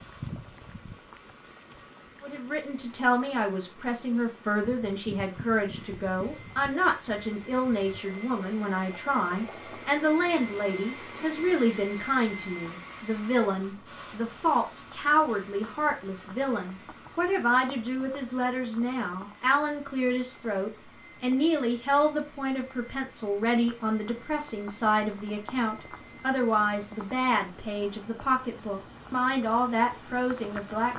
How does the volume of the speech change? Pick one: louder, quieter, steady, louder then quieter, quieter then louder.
steady.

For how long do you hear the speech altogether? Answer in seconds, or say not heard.
29 s.